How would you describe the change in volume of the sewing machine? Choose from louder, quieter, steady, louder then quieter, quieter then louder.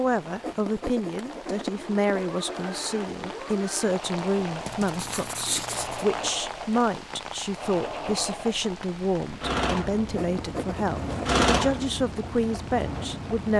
louder.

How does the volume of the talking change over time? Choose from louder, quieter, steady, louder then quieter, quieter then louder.
steady.